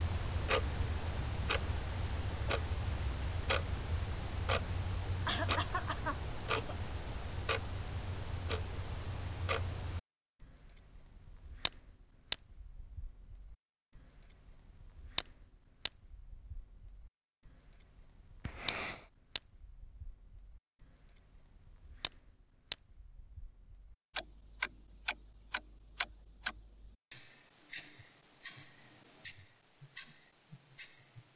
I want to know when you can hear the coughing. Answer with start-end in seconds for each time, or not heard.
5.2-6.8, 18.4-19.1.